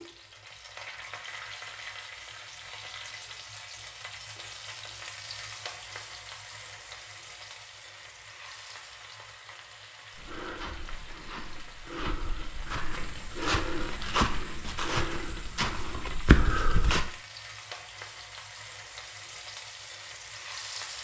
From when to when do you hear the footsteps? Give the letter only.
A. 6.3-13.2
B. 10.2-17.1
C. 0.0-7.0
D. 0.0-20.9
B.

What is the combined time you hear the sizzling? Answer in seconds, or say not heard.
21 s.